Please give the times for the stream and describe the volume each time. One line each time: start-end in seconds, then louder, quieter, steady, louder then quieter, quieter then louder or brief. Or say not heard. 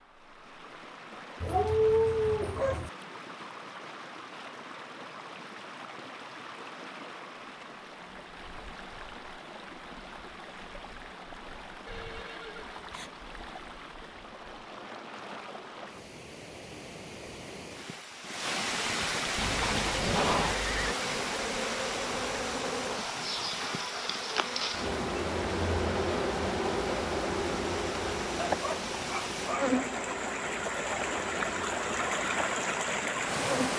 0.0-33.7 louder.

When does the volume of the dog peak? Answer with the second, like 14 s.
2 s.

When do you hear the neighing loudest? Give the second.
20 s.